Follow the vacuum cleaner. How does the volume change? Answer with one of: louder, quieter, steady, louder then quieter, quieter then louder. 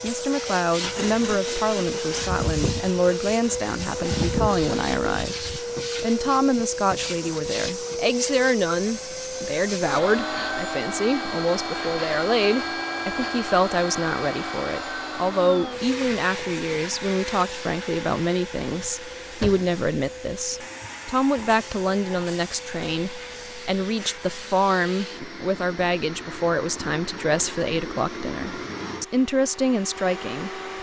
quieter.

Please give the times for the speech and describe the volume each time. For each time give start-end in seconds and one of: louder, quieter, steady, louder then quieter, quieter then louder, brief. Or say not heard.
0.0-30.6 steady.